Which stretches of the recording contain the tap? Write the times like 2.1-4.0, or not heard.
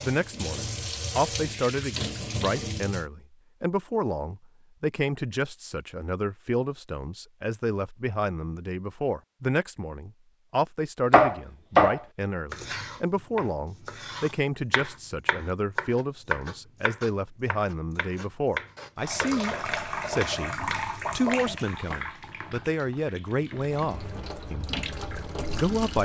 0.0-3.0, 18.9-25.9.